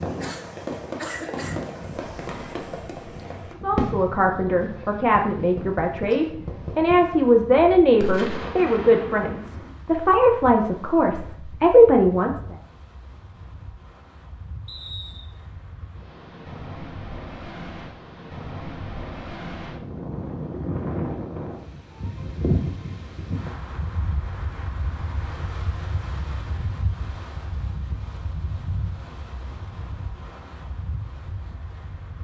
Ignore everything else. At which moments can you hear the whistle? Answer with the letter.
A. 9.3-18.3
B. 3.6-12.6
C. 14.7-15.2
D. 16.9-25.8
C.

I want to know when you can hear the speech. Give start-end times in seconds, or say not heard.
3.6-12.6.